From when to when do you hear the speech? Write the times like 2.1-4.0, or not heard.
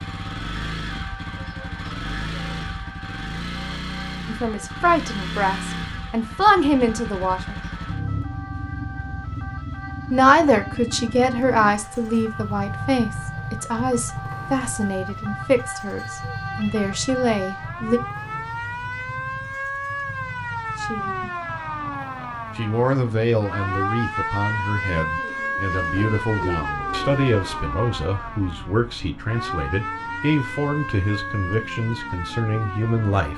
4.2-7.5, 10.1-18.0, 20.8-21.3, 22.6-33.3.